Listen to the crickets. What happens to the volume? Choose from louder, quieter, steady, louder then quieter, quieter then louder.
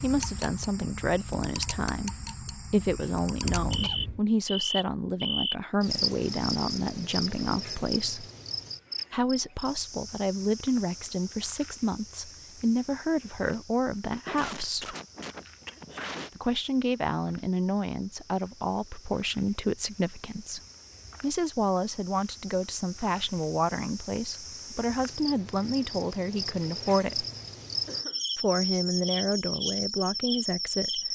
quieter then louder.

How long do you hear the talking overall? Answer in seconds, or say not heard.
27 s.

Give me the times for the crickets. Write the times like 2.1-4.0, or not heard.
0.0-31.0.